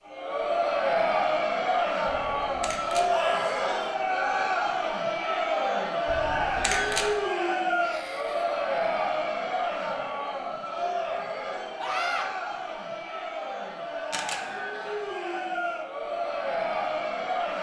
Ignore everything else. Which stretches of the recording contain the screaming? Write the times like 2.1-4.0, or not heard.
3.1-4.0, 7.8-8.6, 11.8-12.2.